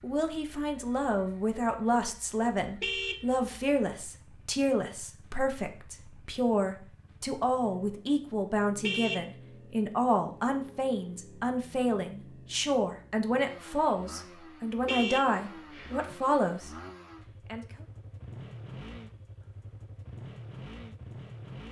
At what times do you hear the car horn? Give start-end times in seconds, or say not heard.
2.8-3.2, 8.8-9.2, 14.8-16.1.